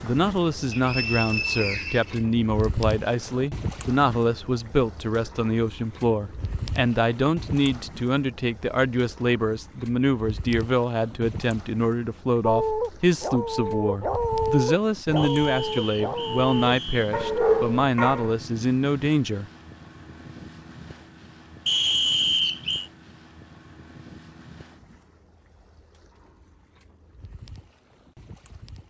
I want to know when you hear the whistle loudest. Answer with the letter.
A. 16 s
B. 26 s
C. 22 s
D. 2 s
C.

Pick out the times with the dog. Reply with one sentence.
The dog can be heard from 12.4 to 18.4 s.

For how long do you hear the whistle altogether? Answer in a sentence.
You can hear the whistle for 5 seconds altogether.